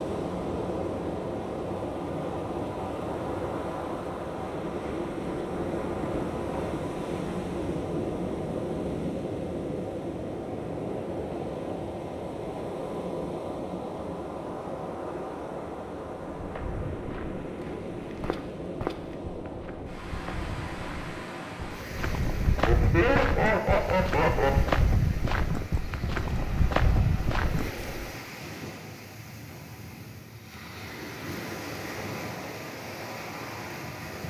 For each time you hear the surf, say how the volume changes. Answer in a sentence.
You can hear the surf from 0.0 to 34.2 s, getting quieter.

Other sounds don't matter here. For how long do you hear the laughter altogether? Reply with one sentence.
The laughter can be heard for 2 seconds in total.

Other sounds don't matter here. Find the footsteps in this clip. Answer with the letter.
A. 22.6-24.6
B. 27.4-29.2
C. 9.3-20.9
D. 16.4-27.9
D.